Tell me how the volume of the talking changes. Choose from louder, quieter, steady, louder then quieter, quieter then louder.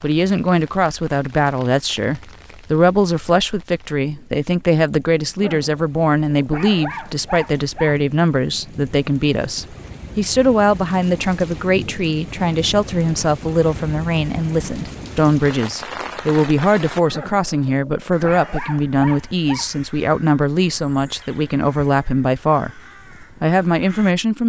steady.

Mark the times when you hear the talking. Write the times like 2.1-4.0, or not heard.
0.0-24.4.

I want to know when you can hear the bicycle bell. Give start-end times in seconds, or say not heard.
not heard.